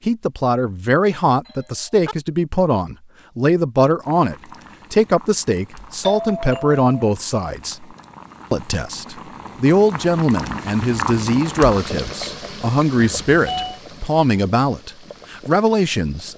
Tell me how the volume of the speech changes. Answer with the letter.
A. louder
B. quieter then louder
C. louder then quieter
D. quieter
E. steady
E.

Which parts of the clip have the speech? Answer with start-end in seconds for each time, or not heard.
0.1-7.8, 8.5-16.3.